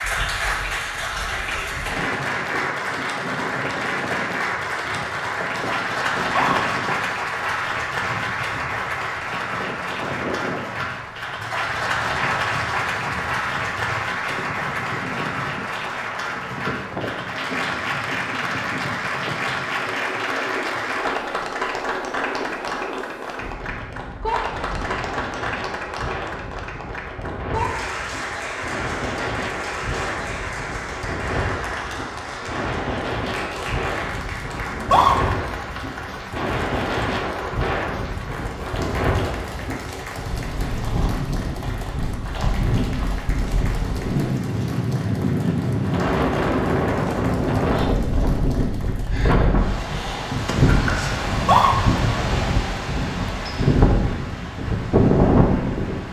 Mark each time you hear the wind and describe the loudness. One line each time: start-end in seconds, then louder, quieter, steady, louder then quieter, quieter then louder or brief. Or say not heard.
0.0-56.0 louder.